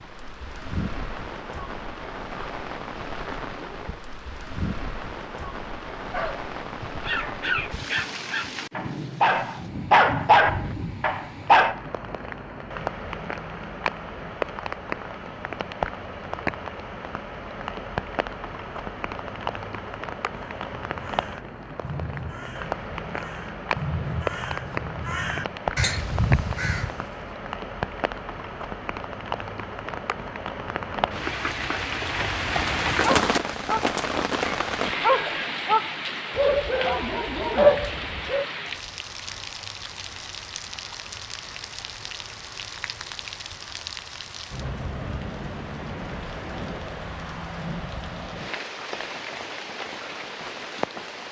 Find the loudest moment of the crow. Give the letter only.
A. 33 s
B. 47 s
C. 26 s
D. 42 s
C.